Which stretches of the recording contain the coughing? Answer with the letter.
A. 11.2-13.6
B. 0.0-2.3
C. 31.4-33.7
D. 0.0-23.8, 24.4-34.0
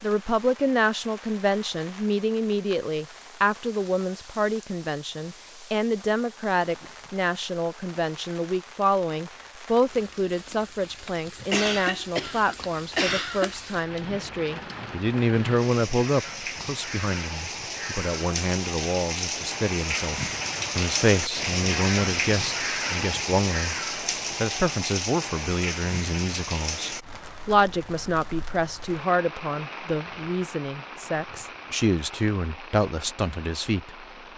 A.